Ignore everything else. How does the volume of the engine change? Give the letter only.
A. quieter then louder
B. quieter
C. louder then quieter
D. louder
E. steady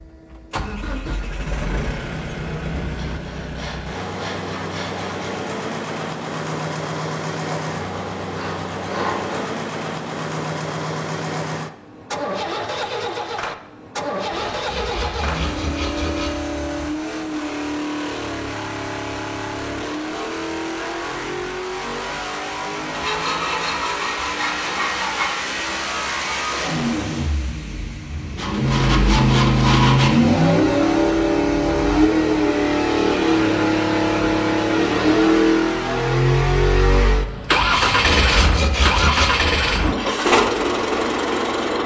D.